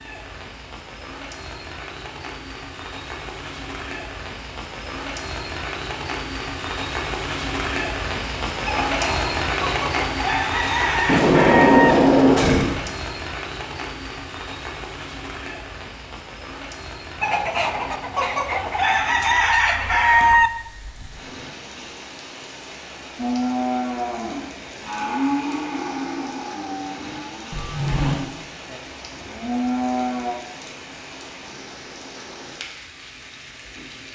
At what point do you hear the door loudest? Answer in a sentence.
The loudest moment of the door is at 12 seconds.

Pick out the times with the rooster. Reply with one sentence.
The rooster can be heard from 8.7 to 11.9 s and from 17.2 to 20.5 s.